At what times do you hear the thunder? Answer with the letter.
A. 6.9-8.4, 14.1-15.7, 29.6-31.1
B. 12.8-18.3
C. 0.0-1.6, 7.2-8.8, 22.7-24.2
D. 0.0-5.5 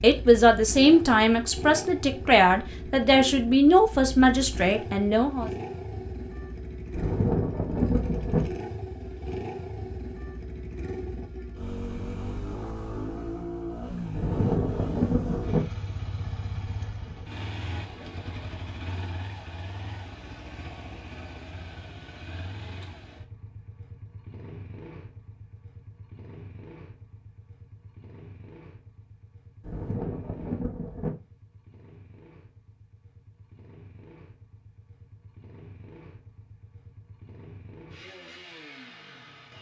A.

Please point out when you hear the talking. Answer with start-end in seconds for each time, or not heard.
0.0-5.5.